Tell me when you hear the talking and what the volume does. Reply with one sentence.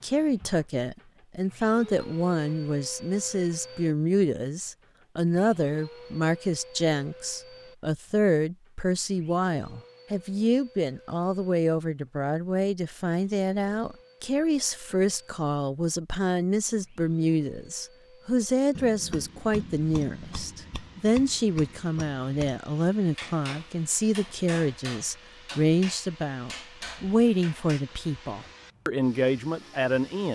The talking can be heard from 0.0 to 30.2 s, at a steady volume.